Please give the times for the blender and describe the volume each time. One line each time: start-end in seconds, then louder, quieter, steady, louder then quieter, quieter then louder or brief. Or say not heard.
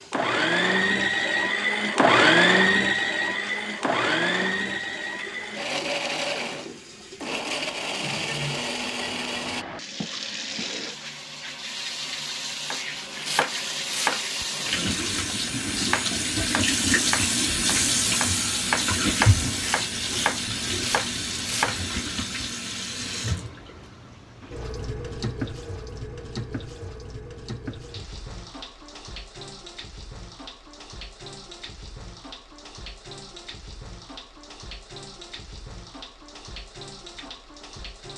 0.1-9.7 quieter.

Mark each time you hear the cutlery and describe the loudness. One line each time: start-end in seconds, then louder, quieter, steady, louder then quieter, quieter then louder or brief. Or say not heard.
not heard.